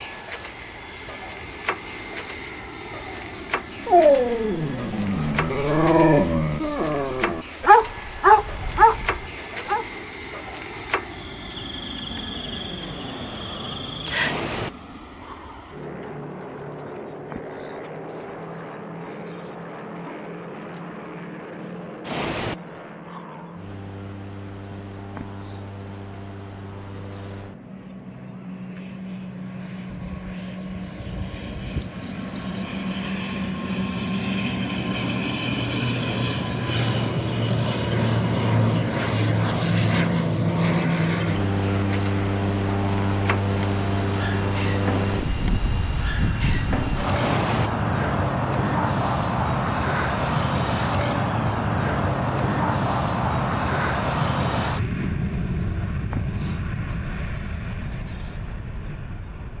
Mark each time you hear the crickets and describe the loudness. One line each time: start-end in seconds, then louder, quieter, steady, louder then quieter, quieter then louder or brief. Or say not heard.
0.0-59.5 steady.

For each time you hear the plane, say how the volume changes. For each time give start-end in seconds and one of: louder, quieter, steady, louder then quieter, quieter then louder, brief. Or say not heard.
0.0-59.5 louder.